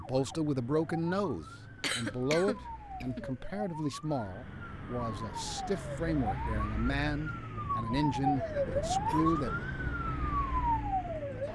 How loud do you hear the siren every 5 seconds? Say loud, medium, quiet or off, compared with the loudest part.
quiet, loud, loud.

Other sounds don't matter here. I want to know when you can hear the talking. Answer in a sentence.
The talking can be heard from 0.0 to 9.7 s.